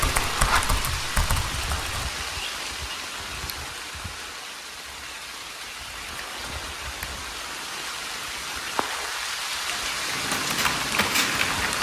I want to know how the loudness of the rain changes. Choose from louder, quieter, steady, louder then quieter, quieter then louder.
quieter then louder.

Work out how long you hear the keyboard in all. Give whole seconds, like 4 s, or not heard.
4 s.